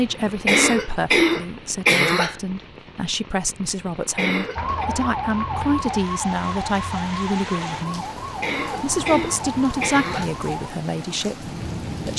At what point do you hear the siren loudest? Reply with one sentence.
The loudest moment of the siren is at 5 seconds.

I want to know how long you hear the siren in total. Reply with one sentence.
You can hear the siren for 6 seconds altogether.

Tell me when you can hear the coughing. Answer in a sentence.
You can hear the coughing from 0.5 to 2.4 s, from 4.2 to 4.9 s and from 8.4 to 10.3 s.